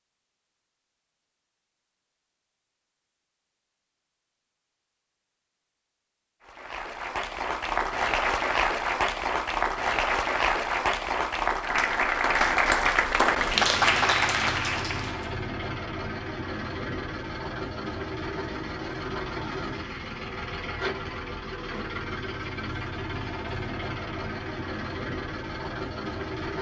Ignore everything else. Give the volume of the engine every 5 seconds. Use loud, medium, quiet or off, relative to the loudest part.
off, off, loud, loud, loud, loud.